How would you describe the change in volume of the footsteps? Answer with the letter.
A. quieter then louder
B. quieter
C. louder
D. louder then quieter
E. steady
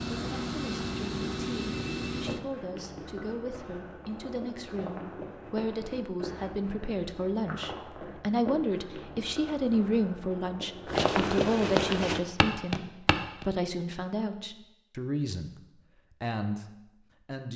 C.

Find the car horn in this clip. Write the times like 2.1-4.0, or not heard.
not heard.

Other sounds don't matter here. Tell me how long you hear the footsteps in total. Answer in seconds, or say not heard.
11 s.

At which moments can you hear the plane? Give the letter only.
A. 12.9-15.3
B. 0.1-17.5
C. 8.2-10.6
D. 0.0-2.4
D.